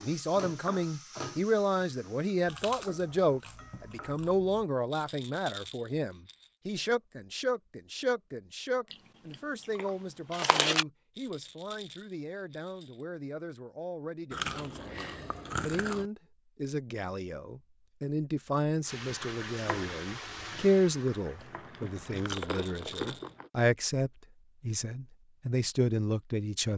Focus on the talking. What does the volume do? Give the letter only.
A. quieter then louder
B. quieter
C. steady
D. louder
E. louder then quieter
A.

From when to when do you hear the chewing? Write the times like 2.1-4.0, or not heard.
2.5-4.7, 8.9-10.8, 14.3-16.1, 21.4-23.5.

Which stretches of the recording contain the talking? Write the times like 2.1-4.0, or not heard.
0.0-26.7.